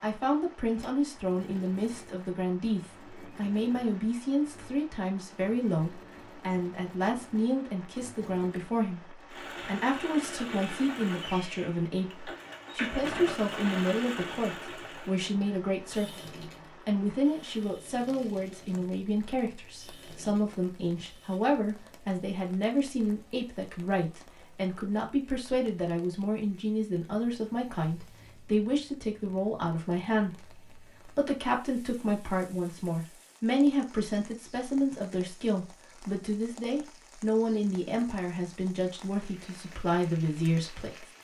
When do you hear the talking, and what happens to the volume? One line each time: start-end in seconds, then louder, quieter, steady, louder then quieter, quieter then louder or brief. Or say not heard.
0.0-41.0 steady.